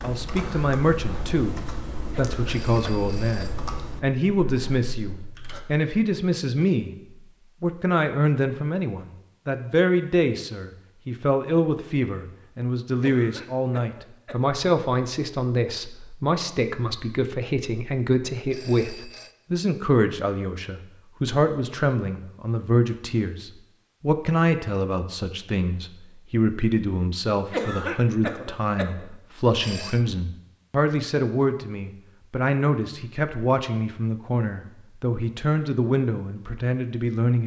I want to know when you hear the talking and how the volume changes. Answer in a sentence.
You can hear the talking from 0.0 to 7.0 s, at a steady volume; and from 7.6 to 37.4 s, at a steady volume.